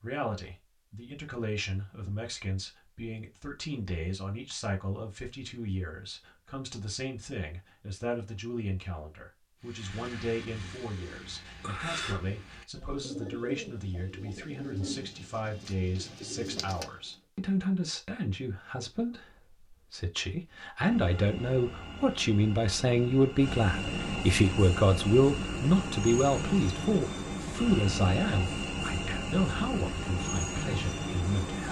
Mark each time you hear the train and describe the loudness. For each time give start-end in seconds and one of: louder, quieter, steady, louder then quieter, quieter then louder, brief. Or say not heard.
20.9-31.6 louder.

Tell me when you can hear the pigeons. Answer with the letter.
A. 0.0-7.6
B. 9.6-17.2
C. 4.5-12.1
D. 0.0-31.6
B.